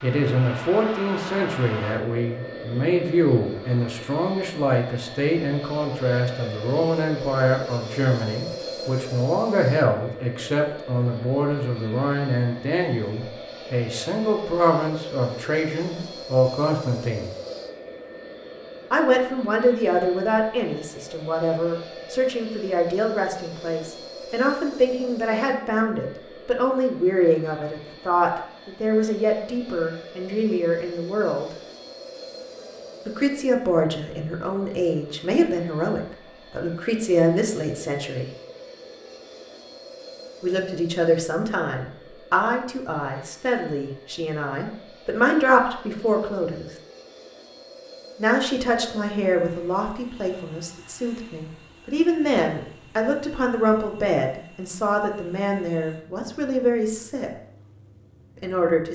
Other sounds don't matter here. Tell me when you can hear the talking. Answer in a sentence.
You can hear the talking from 0.0 to 17.3 s, from 18.9 to 31.5 s, from 33.0 to 38.2 s, from 40.4 to 46.7 s, from 48.1 to 57.3 s and from 58.4 to 58.9 s.